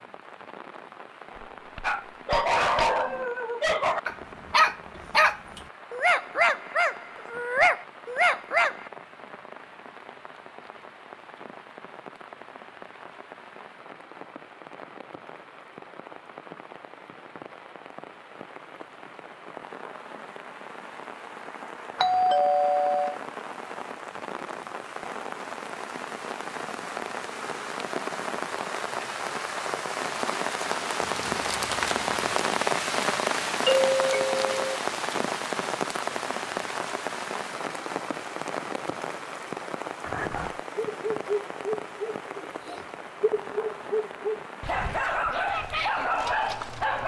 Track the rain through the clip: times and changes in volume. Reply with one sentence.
You can hear the rain from 0.0 to 47.0 s, getting louder then quieter.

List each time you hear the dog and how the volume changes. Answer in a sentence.
The dog can be heard from 1.8 to 8.8 s, at a steady volume; and from 40.0 to 47.0 s, getting quieter then louder.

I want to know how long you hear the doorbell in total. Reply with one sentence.
The doorbell can be heard for 4 seconds in total.